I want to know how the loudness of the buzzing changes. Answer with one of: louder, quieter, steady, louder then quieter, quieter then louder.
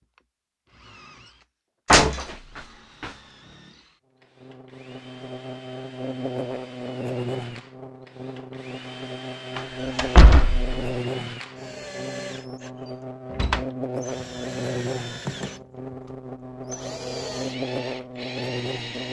steady.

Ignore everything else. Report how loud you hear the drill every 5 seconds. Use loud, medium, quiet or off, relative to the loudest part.
quiet, medium, loud, loud.